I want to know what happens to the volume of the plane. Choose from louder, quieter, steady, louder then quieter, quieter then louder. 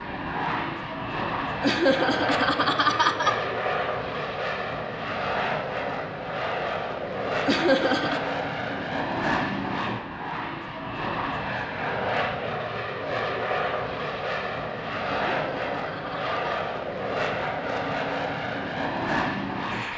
steady.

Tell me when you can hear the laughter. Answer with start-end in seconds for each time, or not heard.
1.6-3.4, 7.5-8.2, 15.1-16.6.